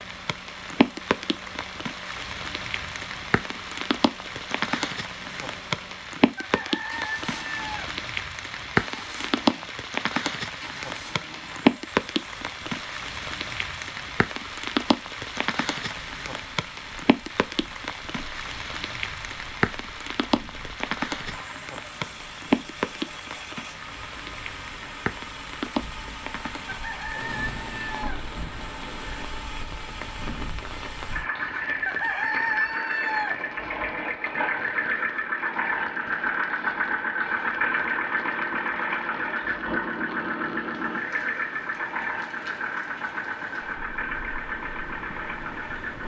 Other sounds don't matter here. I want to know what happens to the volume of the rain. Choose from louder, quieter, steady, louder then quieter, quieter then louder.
quieter.